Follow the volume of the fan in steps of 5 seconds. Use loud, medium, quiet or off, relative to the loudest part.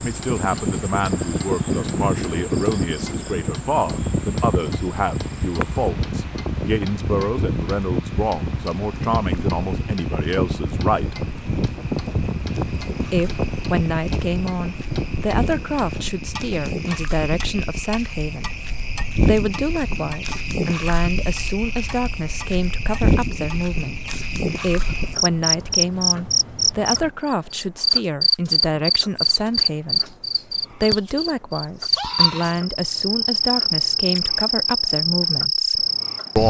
loud, loud, loud, medium, quiet, quiet, off, off.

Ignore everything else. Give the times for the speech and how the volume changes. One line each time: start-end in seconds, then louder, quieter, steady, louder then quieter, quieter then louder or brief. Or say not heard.
0.0-11.2 steady
13.0-36.4 steady.